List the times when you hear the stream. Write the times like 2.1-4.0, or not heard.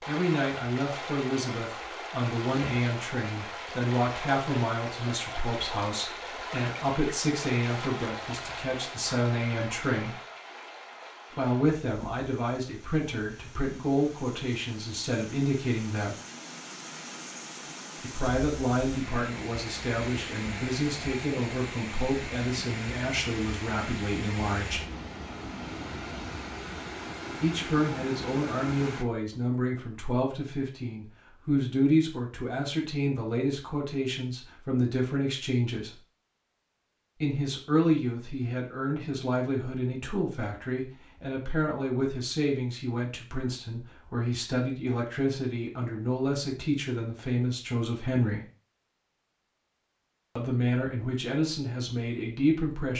0.0-29.1.